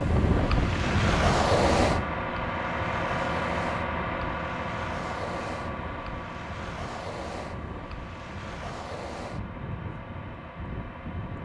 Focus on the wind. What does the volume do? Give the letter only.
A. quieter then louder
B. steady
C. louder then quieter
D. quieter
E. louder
D.